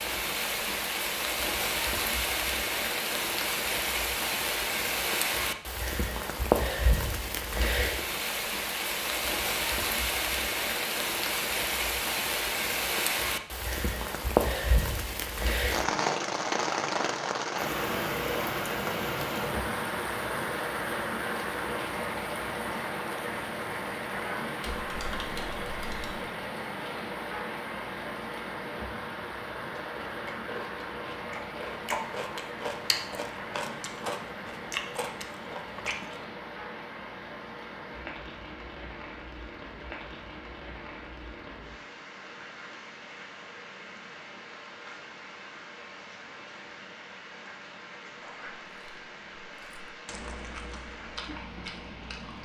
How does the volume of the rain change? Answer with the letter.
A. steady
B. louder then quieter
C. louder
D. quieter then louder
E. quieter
E.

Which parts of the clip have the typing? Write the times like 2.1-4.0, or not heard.
24.6-26.2.